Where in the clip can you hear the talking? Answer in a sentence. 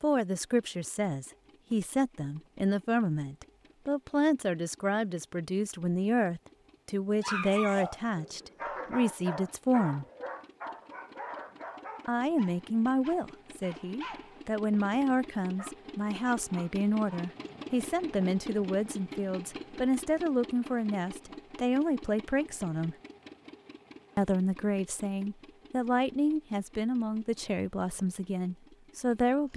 You can hear the talking from 0.0 to 10.1 s, from 12.1 to 22.9 s and from 24.1 to 29.5 s.